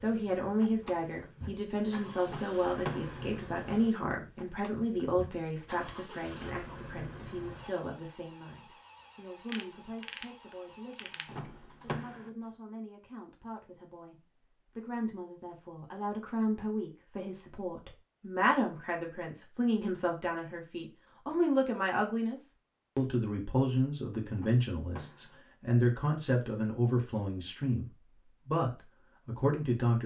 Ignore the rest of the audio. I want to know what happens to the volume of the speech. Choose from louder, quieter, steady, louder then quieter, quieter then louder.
quieter then louder.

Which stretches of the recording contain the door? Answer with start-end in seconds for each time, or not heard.
2.2-3.2, 11.2-12.3, 24.3-25.4.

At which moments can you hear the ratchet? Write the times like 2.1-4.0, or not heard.
9.4-11.2.